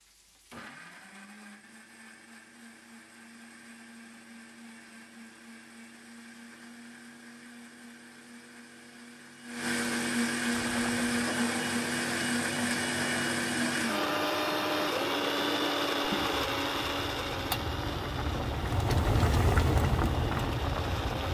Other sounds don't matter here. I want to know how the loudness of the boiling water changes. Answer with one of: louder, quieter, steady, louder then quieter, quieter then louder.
louder.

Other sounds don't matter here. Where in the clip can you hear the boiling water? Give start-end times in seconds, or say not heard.
10.5-21.2.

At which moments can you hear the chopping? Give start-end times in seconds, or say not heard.
not heard.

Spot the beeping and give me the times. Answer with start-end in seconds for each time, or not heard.
not heard.